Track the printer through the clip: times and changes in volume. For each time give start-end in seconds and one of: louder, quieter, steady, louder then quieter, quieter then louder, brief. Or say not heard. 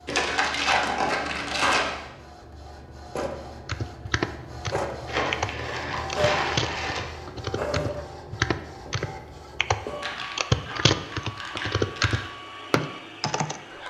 0.0-13.8 louder then quieter.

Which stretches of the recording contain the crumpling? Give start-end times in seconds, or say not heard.
0.1-1.9, 5.0-7.0, 10.0-12.2.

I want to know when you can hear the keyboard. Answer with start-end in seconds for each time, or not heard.
3.6-13.6.